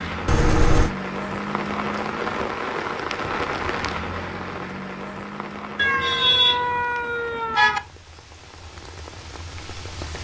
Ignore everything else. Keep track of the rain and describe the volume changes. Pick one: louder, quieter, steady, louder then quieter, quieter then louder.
quieter.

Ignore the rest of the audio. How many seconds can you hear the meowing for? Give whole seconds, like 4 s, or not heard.
3 s.